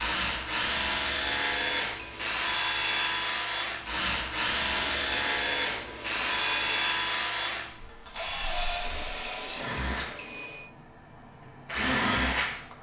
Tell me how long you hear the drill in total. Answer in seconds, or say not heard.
13 s.